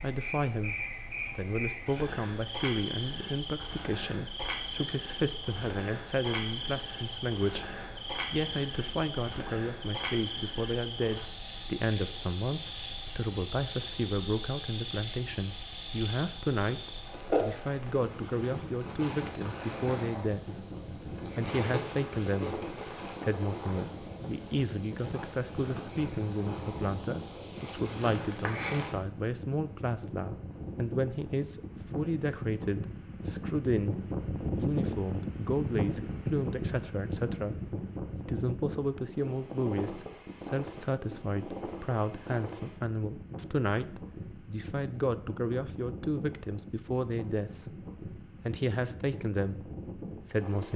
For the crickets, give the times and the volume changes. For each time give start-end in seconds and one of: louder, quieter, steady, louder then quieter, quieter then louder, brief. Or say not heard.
0.0-33.2 steady.